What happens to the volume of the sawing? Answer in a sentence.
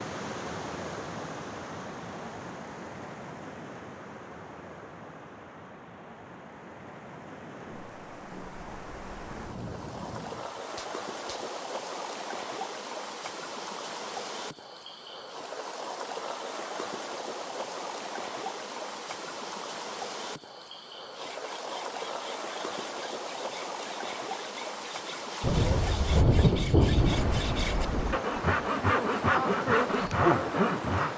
The volume of the sawing goes up.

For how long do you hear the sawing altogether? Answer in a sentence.
You can hear the sawing for 10 seconds altogether.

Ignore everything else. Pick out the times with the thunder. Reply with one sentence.
The thunder can be heard from 7.6 to 11.4 s and from 25.4 to 28.2 s.